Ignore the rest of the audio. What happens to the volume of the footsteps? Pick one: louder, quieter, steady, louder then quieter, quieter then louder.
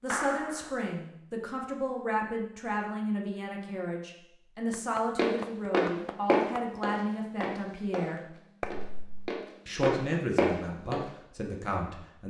quieter then louder.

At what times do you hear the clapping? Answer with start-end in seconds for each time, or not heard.
0.1-0.7, 4.7-6.6, 8.6-9.3.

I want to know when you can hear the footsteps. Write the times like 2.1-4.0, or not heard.
5.2-11.1.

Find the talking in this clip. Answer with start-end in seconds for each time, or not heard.
0.0-8.3, 9.7-12.2.